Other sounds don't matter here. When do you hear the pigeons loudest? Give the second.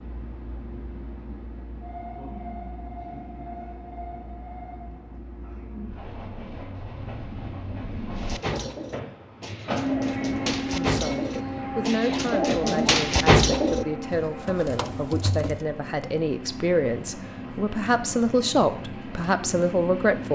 13 s.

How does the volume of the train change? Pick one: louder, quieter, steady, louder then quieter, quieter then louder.
louder then quieter.